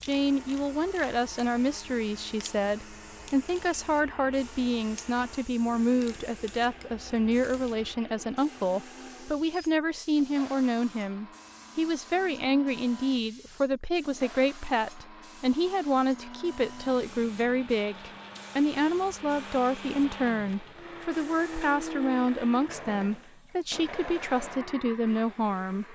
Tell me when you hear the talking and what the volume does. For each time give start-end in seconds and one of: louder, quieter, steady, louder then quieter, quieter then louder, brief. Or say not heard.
0.0-25.8 steady.